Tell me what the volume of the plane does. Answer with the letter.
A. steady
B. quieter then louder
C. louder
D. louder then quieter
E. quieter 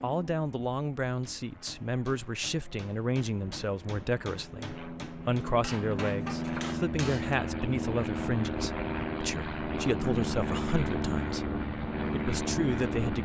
C.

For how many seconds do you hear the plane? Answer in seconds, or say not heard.
13 s.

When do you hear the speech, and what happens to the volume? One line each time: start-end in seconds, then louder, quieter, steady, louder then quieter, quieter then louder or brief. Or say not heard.
0.0-13.1 steady.